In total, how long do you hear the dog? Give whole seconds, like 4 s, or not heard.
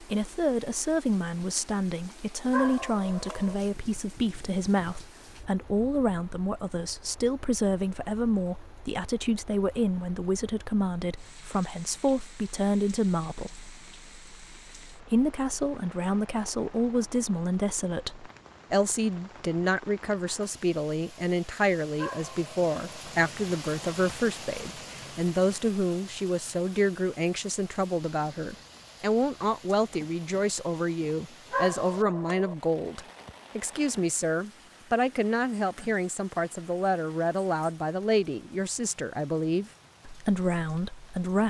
3 s.